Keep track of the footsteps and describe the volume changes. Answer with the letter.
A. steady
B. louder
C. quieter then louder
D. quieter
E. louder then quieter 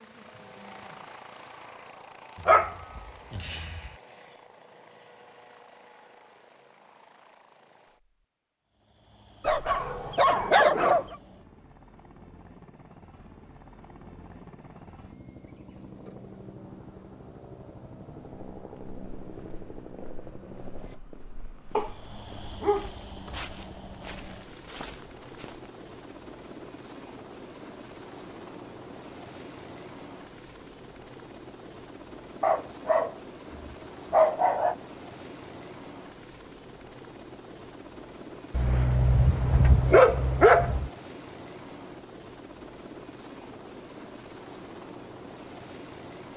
B.